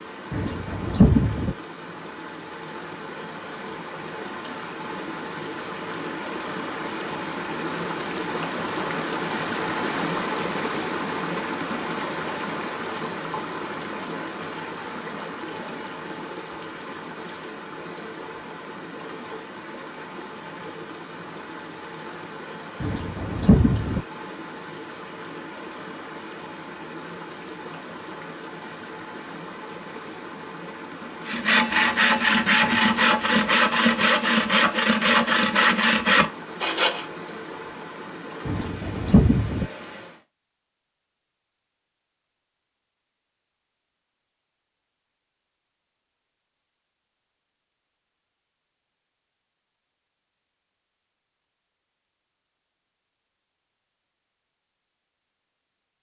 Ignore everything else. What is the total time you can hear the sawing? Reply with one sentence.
You can hear the sawing for 6 seconds altogether.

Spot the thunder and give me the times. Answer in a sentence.
You can hear the thunder from 0.3 to 1.6 s, from 22.8 to 24.1 s and from 38.5 to 39.7 s.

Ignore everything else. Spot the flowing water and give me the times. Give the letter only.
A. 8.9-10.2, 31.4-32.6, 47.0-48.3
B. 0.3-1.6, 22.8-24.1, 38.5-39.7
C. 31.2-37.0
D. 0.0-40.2
D.